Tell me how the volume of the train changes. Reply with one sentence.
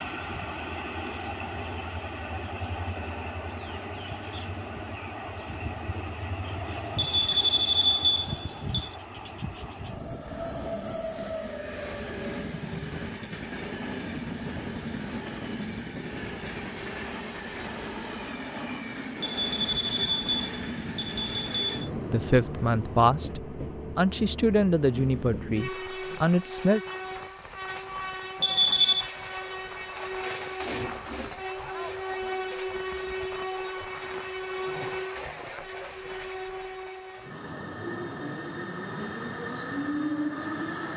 The volume of the train stays about the same.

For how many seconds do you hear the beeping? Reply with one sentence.
The beeping can be heard for 5 seconds in total.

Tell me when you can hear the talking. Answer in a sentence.
You can hear the talking from 22.1 to 26.8 s.